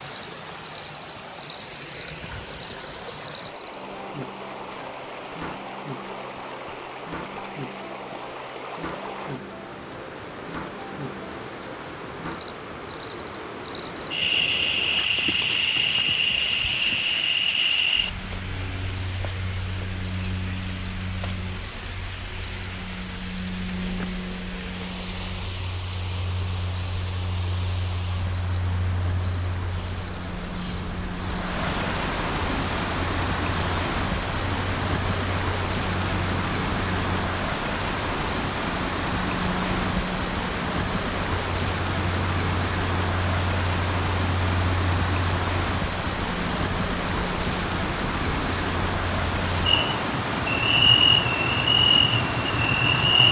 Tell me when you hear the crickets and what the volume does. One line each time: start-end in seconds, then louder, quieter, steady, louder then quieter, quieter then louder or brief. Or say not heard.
0.0-53.2 steady.